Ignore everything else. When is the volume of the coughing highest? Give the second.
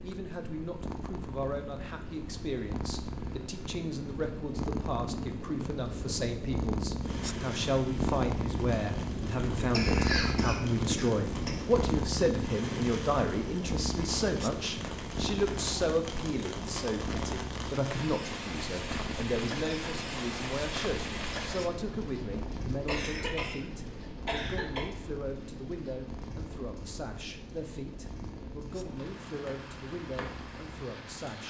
10 s.